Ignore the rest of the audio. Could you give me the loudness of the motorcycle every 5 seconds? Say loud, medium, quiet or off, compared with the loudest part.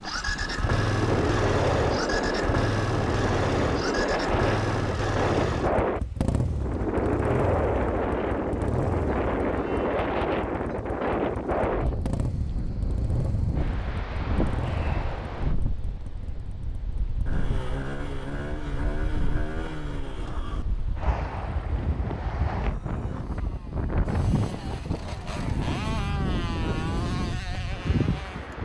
loud, loud, medium, medium, quiet, medium.